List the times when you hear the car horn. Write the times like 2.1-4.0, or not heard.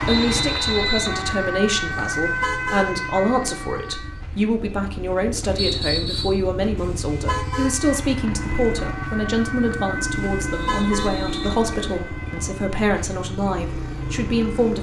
2.1-3.0, 6.8-7.8, 10.2-11.2.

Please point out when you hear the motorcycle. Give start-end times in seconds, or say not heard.
0.0-14.7.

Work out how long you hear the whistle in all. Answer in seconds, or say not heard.
4 s.